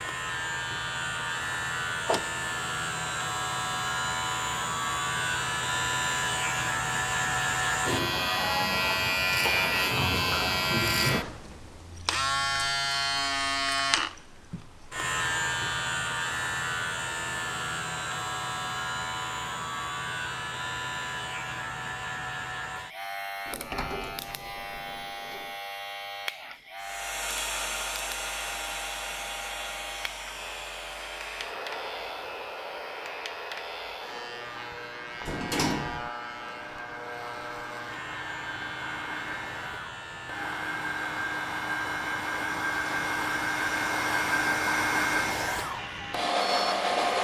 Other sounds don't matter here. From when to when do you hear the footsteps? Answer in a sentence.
The footsteps can't be heard in this clip.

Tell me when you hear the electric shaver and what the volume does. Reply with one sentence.
You can hear the electric shaver from 0.0 to 47.1 s, getting quieter.